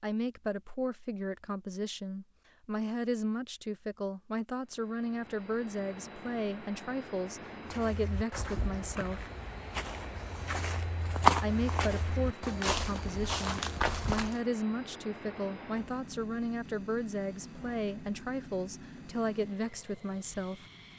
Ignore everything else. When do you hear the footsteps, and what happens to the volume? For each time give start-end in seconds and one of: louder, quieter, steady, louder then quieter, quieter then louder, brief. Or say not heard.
7.7-14.4 louder then quieter.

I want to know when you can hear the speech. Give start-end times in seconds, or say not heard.
0.0-9.3, 11.4-20.6.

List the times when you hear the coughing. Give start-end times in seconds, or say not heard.
not heard.